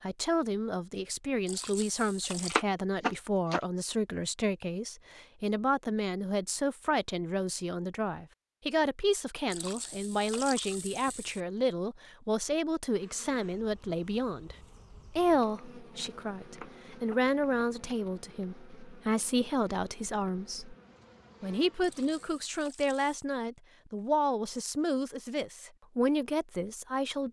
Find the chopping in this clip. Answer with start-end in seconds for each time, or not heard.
2.5-3.6, 16.6-17.6.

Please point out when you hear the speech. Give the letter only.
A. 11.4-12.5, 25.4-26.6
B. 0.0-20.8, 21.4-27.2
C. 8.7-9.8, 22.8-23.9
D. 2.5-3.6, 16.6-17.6
B.